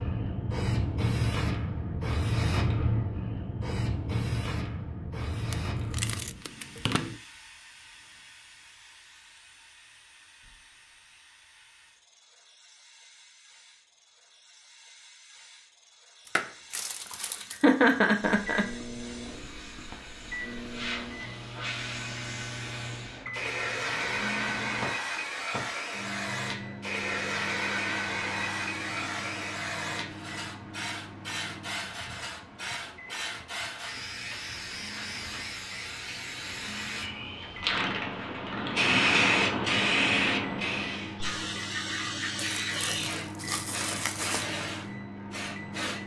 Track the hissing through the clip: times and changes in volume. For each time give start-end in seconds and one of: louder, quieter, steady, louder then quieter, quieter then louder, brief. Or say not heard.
0.0-46.0 quieter then louder.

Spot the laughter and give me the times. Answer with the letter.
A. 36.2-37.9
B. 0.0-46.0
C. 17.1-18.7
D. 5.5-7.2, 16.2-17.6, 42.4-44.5
C.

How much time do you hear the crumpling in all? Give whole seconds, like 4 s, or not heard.
5 s.